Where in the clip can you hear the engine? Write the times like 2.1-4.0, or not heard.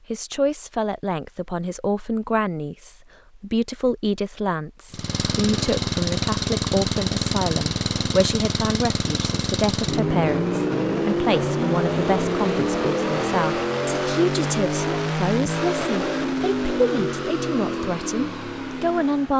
4.9-19.3.